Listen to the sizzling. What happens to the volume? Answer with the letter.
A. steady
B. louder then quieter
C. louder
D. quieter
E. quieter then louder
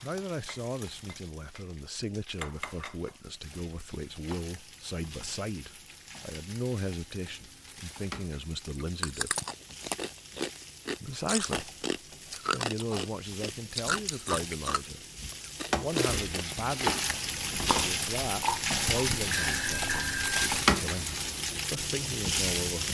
C.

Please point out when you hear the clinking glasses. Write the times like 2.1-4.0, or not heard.
not heard.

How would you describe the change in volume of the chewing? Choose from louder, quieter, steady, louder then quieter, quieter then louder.
steady.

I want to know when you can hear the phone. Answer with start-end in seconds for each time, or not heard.
19.3-20.4.